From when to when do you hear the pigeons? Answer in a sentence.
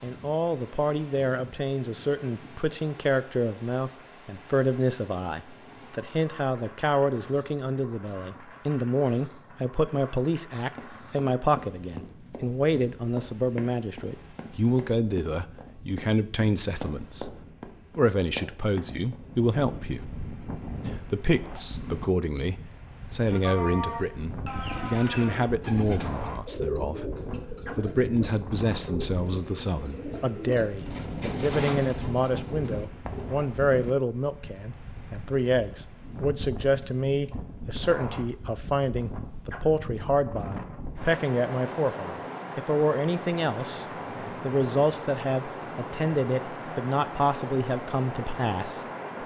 The pigeons can be heard from 23.2 to 33.4 s.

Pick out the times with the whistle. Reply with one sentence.
You can't hear the whistle here.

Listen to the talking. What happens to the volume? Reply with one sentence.
The volume of the talking stays about the same.